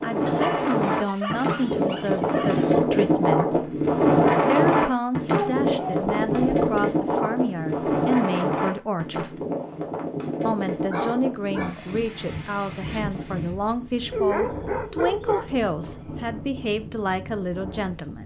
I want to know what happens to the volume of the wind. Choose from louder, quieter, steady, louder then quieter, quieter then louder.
quieter.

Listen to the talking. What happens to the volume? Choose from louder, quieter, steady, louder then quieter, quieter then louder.
steady.